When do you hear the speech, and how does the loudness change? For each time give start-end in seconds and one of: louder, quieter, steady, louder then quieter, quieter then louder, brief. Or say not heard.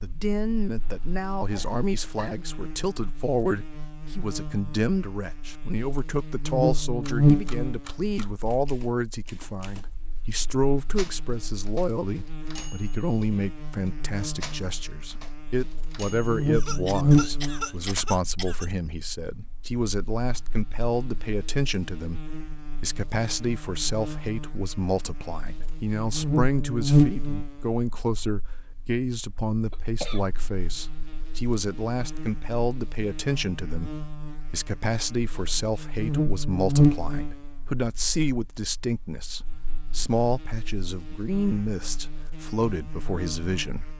0.0-43.9 steady.